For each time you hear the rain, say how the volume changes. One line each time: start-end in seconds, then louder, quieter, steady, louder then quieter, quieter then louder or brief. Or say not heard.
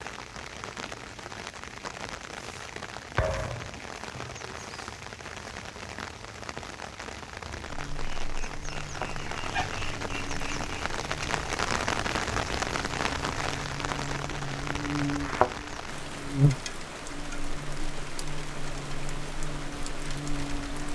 0.0-20.8 louder then quieter.